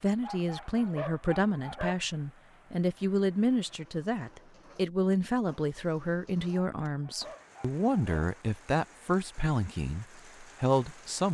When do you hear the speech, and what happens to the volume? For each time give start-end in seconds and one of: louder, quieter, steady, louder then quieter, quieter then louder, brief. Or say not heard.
0.0-11.2 steady.